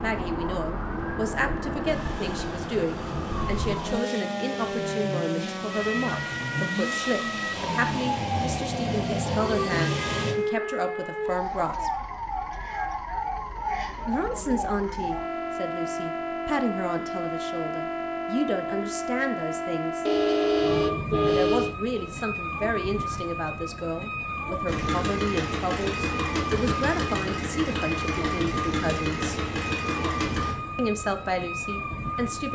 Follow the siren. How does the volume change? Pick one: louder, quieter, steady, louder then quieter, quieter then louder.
steady.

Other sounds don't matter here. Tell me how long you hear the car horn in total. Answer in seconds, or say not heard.
2 s.